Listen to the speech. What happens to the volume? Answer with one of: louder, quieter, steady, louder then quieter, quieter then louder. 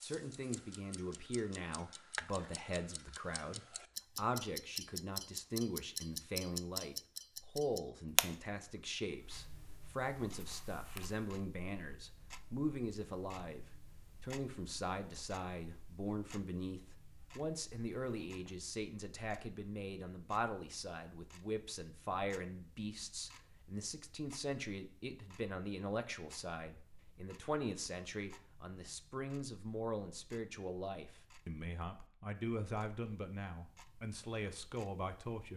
steady.